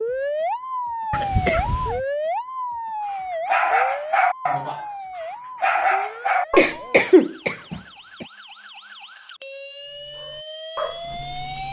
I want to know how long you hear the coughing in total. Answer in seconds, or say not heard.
3 s.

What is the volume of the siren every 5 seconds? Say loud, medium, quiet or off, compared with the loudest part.
loud, quiet, medium.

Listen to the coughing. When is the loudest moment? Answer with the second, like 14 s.
7 s.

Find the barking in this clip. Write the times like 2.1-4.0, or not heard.
3.1-6.8, 9.9-11.6.